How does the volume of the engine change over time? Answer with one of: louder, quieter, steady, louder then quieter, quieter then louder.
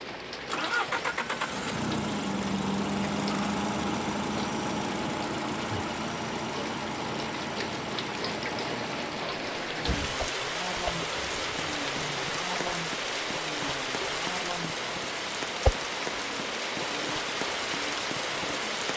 quieter.